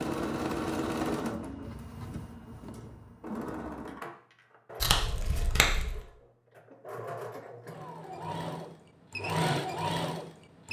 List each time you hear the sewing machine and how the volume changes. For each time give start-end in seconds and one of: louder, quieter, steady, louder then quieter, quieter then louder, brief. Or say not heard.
0.0-10.6 quieter then louder.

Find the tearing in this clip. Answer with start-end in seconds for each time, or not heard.
4.8-6.0.